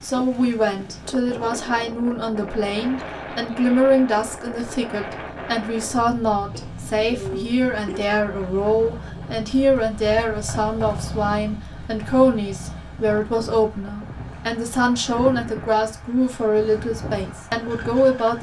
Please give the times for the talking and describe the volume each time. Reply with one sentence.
The talking can be heard from 0.0 to 18.3 s, at a steady volume.